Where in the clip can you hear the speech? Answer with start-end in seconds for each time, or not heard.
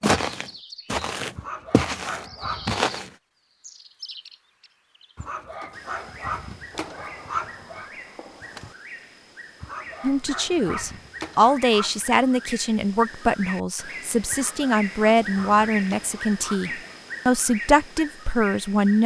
10.0-19.0.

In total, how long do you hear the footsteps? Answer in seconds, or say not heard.
3 s.